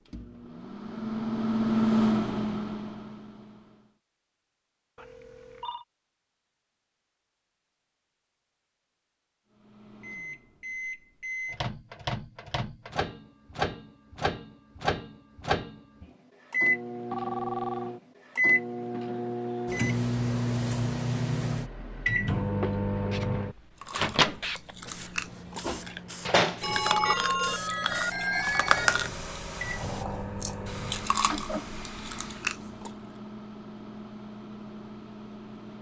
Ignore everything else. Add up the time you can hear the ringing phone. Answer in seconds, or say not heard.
4 s.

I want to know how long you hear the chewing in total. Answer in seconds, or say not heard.
9 s.